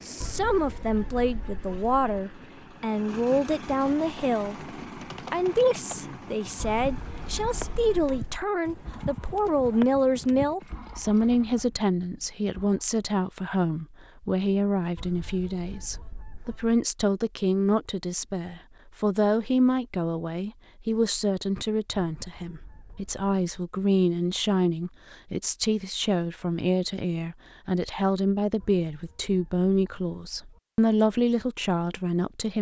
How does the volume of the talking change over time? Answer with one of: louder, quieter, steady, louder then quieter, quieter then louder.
steady.